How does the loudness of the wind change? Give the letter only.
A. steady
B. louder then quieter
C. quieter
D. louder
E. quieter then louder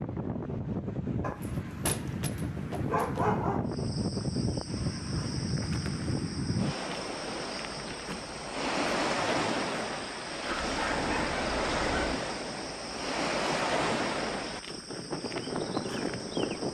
A.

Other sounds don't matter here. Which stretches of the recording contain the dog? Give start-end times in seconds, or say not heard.
1.2-3.7, 10.5-12.2.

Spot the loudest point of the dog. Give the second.
3 s.